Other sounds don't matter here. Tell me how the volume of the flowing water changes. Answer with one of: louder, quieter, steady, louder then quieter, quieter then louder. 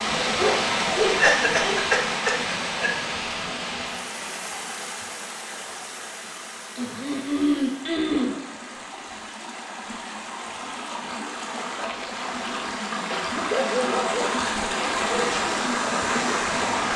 quieter then louder.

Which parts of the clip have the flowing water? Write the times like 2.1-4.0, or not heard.
0.0-16.9.